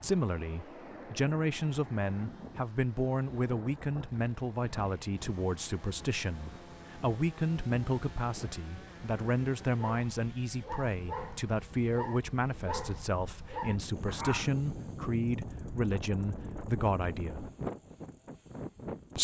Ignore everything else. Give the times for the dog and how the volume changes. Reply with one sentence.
The dog can be heard from 9.8 to 14.6 s, at a steady volume.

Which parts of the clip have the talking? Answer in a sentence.
You can hear the talking from 0.0 to 17.4 s.